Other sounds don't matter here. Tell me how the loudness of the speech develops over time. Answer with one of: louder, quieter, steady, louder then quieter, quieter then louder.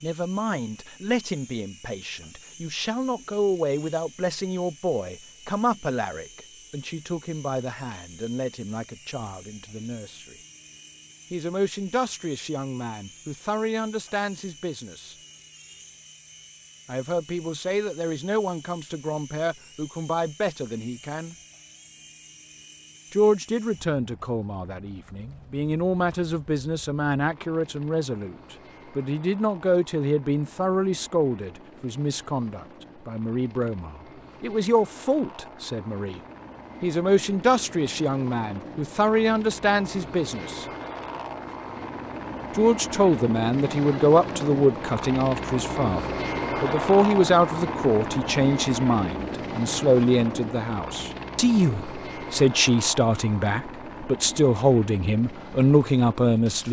louder.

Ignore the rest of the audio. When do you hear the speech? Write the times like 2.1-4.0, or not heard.
0.0-10.3, 11.3-15.2, 16.9-21.4, 23.1-36.2, 36.8-40.6, 42.5-56.6.